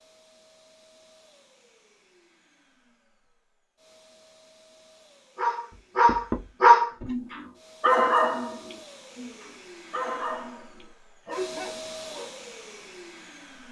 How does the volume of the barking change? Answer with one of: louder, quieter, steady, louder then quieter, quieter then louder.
quieter.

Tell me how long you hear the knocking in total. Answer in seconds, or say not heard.
2 s.